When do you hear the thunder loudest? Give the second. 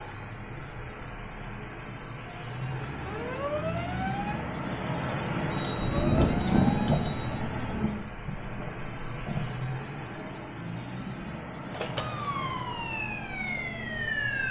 7 s.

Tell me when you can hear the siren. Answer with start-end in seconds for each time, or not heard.
2.5-7.3, 11.7-14.4.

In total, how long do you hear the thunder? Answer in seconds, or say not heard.
4 s.